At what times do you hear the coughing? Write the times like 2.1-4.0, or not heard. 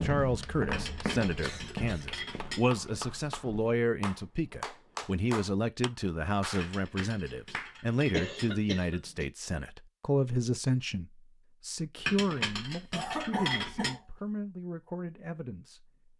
1.4-2.5, 8.1-9.2, 12.9-14.1.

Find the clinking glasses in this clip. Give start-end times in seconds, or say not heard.
0.7-2.9, 6.6-8.6, 12.1-13.9.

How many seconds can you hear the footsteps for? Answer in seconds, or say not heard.
4 s.